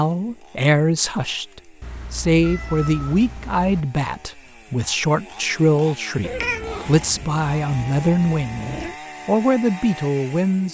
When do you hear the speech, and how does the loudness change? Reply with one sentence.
You can hear the speech from 0.0 to 10.6 s, at a steady volume.